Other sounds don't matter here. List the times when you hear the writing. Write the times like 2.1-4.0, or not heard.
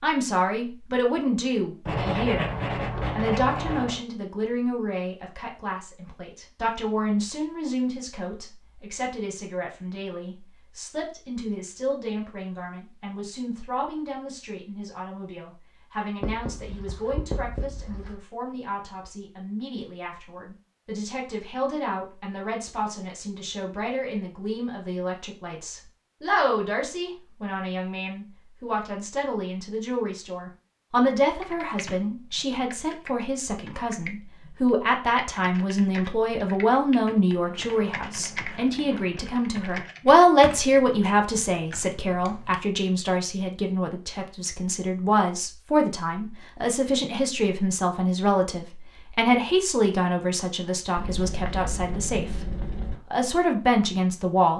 1.9-4.0, 16.2-18.1, 37.5-39.5, 51.0-53.0.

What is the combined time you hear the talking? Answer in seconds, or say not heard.
53 s.